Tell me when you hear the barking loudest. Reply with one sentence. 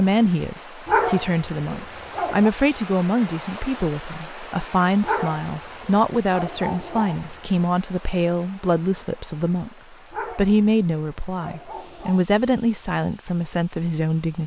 The volume of the barking peaks at 1 second.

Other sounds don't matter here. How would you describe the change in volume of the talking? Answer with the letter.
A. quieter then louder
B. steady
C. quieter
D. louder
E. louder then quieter
B.